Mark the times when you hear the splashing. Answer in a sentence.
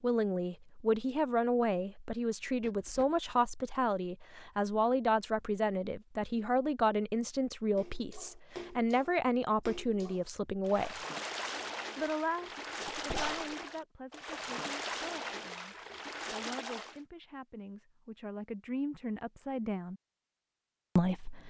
You can hear the splashing from 7.8 to 17.0 s.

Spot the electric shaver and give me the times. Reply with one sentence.
The electric shaver can't be heard in this clip.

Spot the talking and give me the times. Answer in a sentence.
The talking can be heard from 0.0 to 11.1 s, from 11.9 to 19.9 s and from 20.9 to 21.4 s.